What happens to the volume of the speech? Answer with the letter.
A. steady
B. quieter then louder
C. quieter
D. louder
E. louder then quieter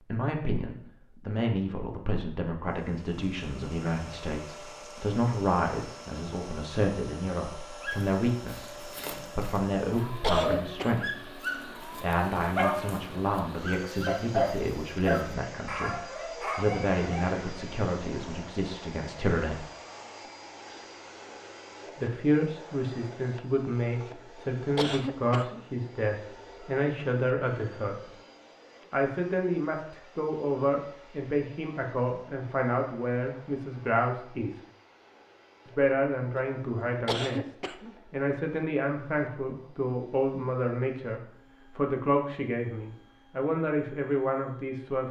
A.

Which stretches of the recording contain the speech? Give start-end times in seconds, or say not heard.
0.1-19.6, 21.9-28.1, 28.9-34.6, 35.6-45.0.